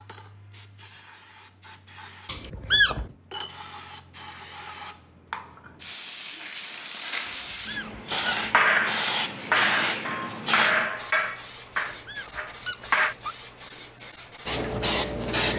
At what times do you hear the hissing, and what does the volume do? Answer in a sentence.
You can hear the hissing from 0.0 to 15.5 s, getting louder.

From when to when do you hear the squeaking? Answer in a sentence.
The squeaking can be heard from 2.2 to 3.0 s, from 7.2 to 8.4 s and from 11.7 to 13.3 s.